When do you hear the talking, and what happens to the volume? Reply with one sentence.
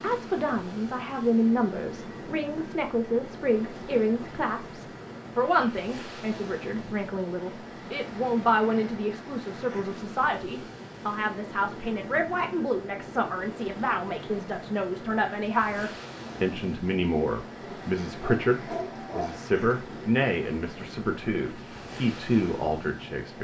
The talking can be heard from 0.0 to 23.3 s, at a steady volume.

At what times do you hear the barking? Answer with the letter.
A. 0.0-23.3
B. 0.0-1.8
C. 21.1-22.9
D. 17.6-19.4
D.